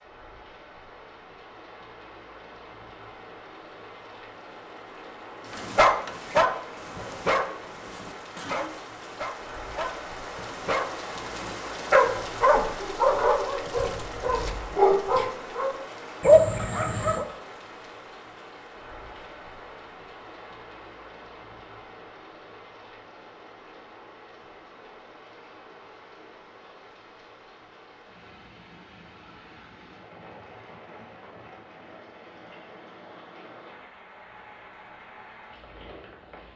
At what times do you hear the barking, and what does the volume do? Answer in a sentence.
You can hear the barking from 5.5 to 17.2 s, getting quieter then louder.